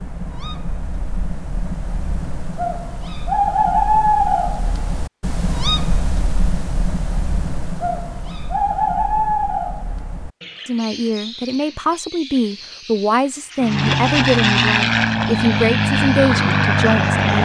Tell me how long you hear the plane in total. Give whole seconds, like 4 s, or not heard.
4 s.